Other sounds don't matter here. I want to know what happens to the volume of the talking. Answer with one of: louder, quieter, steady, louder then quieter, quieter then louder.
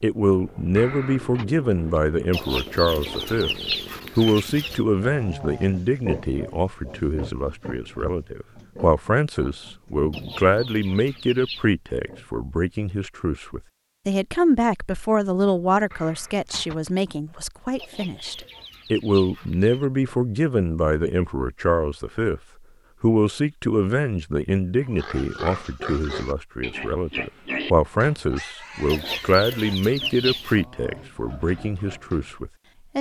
steady.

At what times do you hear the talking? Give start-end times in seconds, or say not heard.
0.0-3.5, 4.2-22.4, 23.0-32.9.